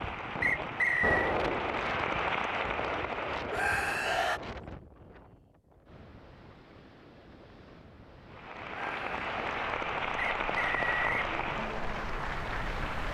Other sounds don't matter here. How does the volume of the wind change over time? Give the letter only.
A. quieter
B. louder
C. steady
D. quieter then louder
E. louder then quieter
D.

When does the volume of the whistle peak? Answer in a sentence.
The loudest moment of the whistle is at 1 second.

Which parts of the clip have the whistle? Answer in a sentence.
You can hear the whistle from 0.4 to 1.4 s and from 10.3 to 11.3 s.